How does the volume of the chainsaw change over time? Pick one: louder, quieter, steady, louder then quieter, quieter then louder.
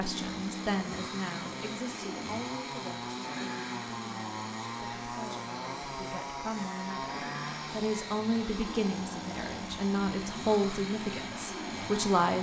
steady.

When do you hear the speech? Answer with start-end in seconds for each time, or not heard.
0.0-12.3.